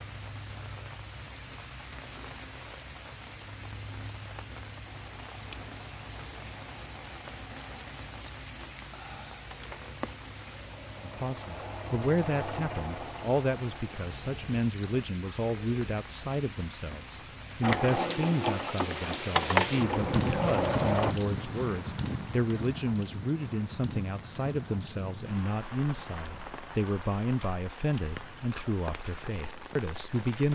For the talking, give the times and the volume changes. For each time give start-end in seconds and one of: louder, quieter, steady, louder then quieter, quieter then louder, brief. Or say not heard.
11.0-30.4 steady.